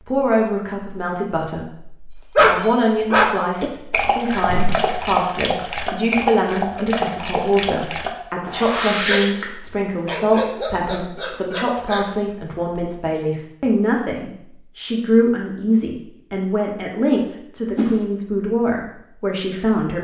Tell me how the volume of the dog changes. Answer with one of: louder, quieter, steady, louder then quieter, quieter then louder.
quieter.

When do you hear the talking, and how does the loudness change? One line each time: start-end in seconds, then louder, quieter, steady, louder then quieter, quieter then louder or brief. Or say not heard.
0.0-19.9 steady.